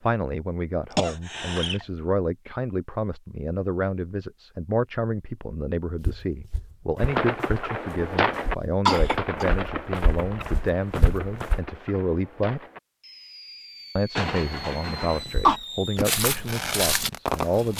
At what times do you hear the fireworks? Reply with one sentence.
The fireworks can be heard from 7.0 to 17.7 s.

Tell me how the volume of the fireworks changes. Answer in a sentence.
The volume of the fireworks goes down, then up.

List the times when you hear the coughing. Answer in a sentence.
The coughing can be heard from 0.9 to 1.9 s, from 8.8 to 9.4 s and from 14.2 to 15.6 s.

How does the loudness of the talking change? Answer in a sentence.
The loudness of the talking stays about the same.